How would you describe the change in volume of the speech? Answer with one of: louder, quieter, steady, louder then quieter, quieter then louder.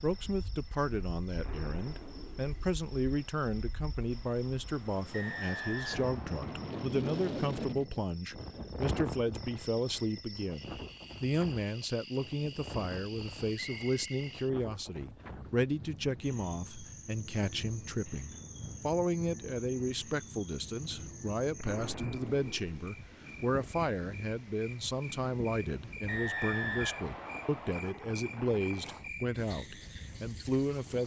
steady.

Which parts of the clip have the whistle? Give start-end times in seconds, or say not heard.
5.1-6.9, 13.5-14.3, 26.1-27.8.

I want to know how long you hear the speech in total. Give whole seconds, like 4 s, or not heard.
31 s.